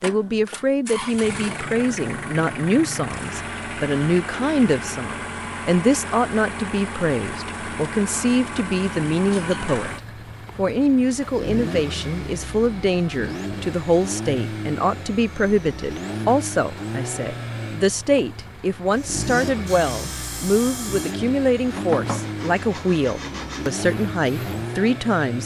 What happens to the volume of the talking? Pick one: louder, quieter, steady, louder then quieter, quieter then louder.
steady.